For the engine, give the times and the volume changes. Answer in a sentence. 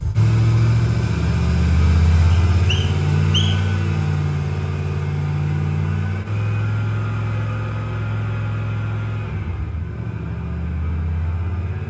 The engine can be heard from 0.0 to 11.8 s, getting quieter.